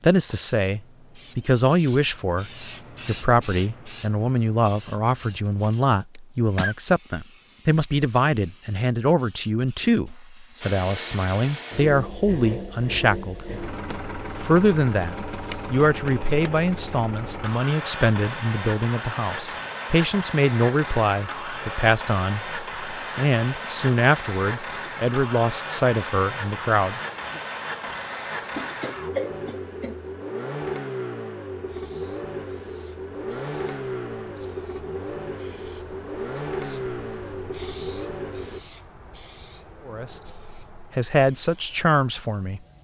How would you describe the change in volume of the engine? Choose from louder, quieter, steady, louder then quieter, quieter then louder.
steady.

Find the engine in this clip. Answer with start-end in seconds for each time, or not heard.
10.6-38.6.